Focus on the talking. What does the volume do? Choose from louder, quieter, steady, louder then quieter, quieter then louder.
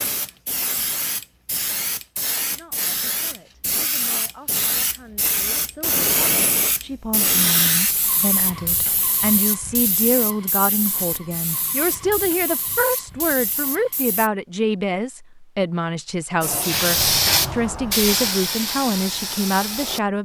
louder.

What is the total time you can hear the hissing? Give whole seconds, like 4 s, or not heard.
18 s.